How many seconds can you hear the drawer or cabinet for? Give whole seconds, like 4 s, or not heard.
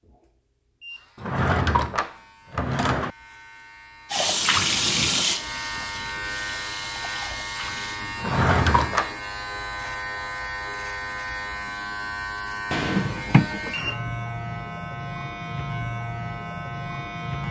4 s.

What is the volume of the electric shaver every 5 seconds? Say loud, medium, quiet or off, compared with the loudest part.
quiet, loud, loud, loud.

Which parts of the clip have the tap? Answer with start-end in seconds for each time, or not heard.
4.1-8.0.